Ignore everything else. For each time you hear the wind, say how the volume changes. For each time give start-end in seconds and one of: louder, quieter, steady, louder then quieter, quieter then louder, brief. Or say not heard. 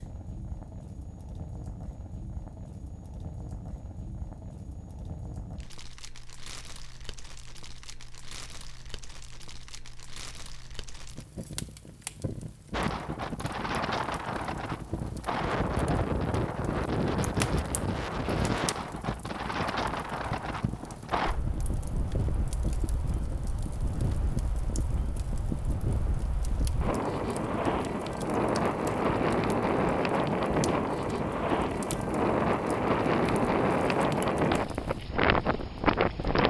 12.7-36.4 quieter then louder.